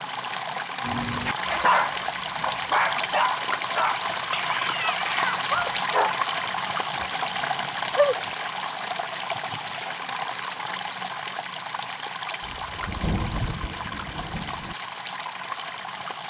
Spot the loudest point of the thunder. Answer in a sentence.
The loudest moment of the thunder is at 13 seconds.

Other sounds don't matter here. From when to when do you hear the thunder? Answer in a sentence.
The thunder can be heard from 12.4 to 14.8 s.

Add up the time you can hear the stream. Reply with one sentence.
The stream can be heard for 16 seconds in total.